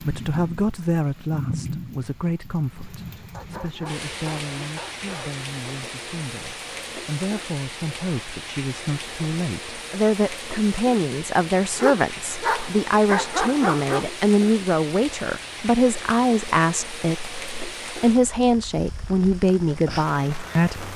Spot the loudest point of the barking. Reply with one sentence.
The loudest moment of the barking is at 13 seconds.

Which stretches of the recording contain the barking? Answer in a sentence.
The barking can be heard from 3.3 to 5.3 s and from 11.8 to 14.1 s.